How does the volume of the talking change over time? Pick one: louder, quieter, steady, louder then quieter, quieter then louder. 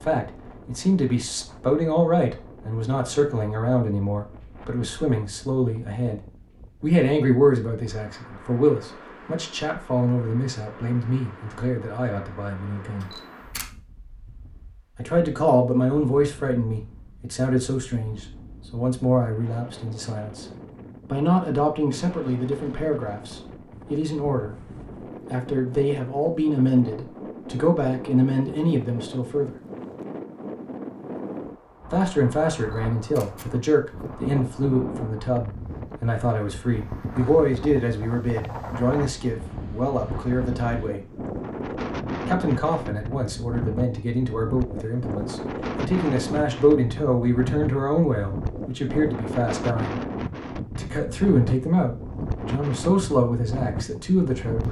steady.